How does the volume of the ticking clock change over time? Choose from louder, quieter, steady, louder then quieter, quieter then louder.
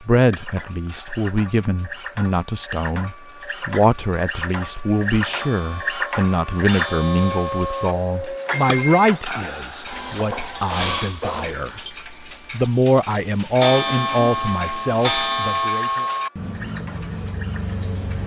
louder.